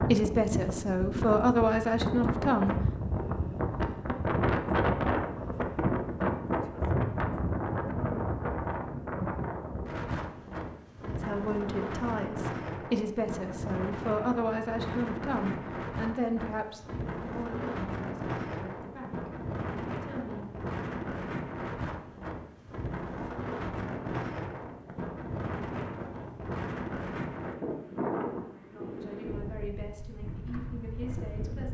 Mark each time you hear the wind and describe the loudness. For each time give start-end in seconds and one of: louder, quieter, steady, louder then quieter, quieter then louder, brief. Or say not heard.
0.0-31.6 quieter.